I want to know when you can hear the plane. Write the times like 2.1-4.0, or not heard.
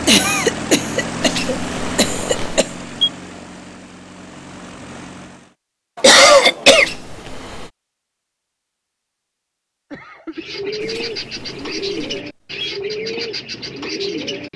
0.0-5.5.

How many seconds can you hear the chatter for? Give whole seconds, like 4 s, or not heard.
not heard.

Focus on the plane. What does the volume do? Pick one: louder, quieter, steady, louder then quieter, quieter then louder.
quieter.